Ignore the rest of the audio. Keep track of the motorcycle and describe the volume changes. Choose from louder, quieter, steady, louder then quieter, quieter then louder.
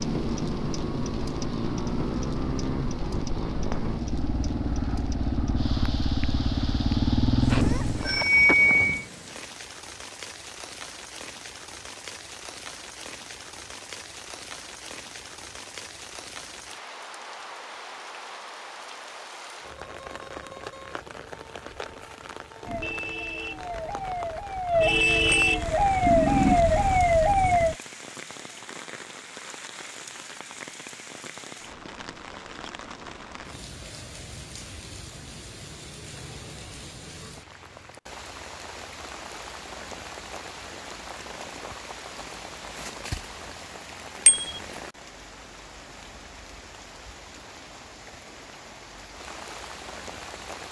louder.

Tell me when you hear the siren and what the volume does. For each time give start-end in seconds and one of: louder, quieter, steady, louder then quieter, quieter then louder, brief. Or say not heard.
22.6-27.8 louder.